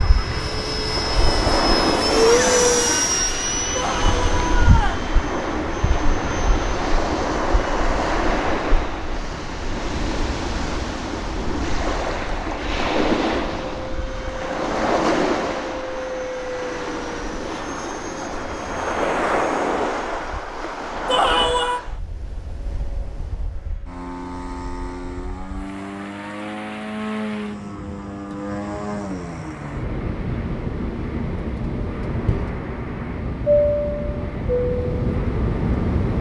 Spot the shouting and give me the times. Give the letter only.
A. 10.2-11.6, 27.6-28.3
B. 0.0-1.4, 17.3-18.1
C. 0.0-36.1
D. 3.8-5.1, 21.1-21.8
D.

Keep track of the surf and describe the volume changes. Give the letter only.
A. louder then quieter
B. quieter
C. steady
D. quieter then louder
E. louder
B.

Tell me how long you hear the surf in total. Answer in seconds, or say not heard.
36 s.